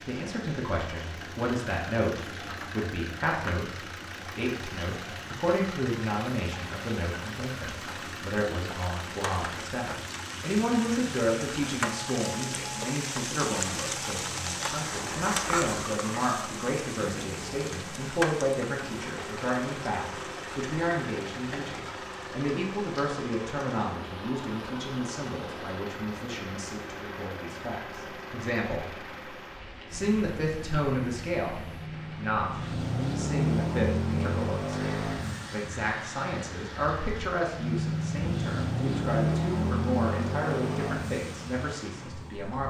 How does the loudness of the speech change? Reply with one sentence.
The volume of the speech stays about the same.